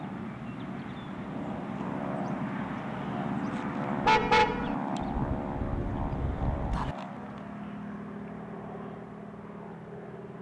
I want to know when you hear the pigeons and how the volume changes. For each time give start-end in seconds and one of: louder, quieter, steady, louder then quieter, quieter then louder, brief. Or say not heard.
not heard.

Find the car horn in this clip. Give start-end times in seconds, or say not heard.
4.0-4.8.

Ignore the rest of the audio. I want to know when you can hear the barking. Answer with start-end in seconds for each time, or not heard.
not heard.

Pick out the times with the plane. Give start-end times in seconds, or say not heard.
0.0-10.3.